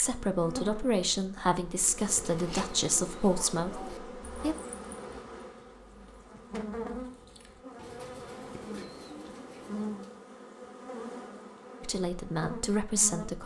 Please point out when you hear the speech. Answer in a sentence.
The speech can be heard from 0.0 to 4.5 s and from 11.8 to 13.4 s.